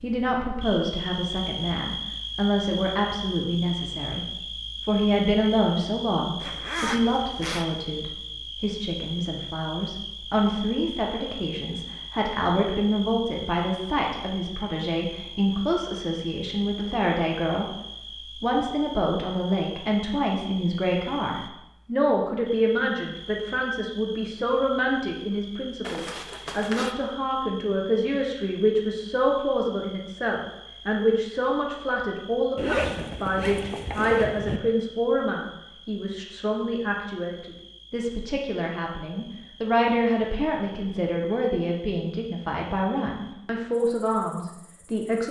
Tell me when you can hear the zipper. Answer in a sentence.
The zipper can be heard from 6.4 to 7.7 s, from 25.8 to 26.9 s and from 32.5 to 34.6 s.